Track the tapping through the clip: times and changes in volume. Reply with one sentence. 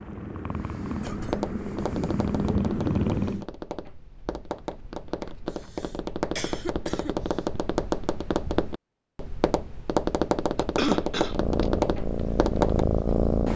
You can hear the tapping from 1.0 to 12.8 s, getting louder.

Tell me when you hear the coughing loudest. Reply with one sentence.
The loudest moment of the coughing is at 11 seconds.